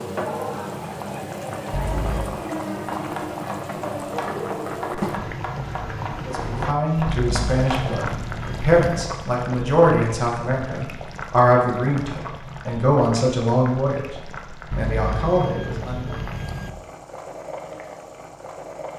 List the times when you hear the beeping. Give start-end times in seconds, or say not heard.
1.7-2.4, 7.0-9.1, 14.7-16.7.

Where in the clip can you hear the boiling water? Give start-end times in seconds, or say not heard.
0.0-18.9.